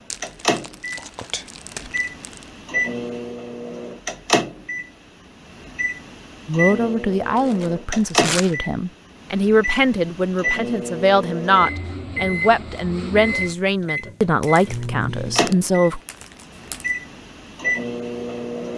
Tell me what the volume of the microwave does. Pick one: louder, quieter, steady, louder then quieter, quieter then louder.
steady.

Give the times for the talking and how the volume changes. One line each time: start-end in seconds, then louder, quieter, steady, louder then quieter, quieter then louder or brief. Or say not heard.
6.5-16.0 steady.